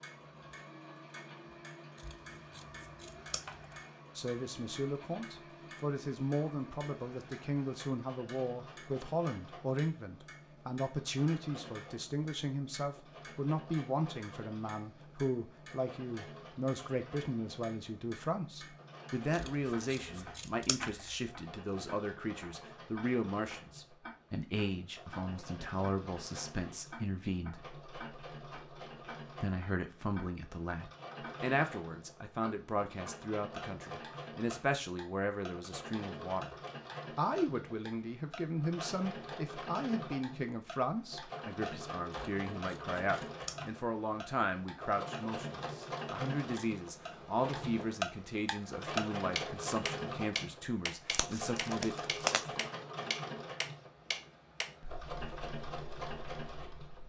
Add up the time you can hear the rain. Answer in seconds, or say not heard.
not heard.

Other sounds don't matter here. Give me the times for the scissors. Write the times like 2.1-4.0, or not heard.
1.9-3.8, 19.3-21.1, 42.1-43.7.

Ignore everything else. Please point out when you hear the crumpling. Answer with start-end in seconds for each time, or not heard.
51.1-52.5.